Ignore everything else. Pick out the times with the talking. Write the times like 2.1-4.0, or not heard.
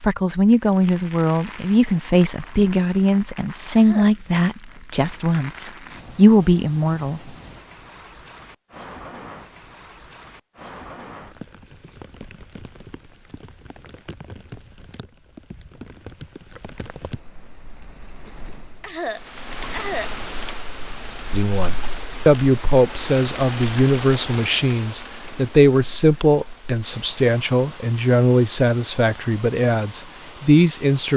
0.0-7.2, 21.3-31.1.